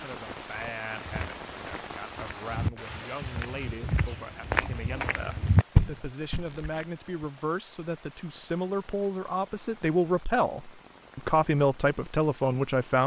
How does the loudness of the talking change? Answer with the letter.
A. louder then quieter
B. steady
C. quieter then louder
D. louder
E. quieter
D.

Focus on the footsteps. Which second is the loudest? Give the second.
6 s.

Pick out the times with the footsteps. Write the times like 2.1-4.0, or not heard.
0.8-7.2.